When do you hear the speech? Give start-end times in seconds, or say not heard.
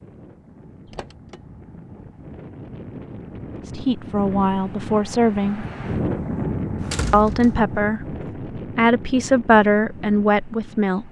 3.6-5.7, 7.1-11.0.